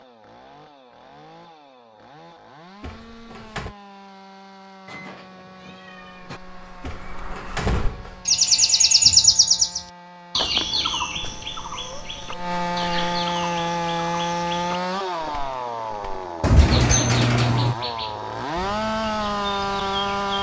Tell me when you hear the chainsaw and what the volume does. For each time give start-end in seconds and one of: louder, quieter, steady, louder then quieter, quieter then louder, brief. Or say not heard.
0.0-20.3 louder.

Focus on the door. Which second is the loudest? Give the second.
17 s.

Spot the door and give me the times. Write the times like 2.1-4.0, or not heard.
2.8-3.8, 6.8-8.2, 16.4-17.8.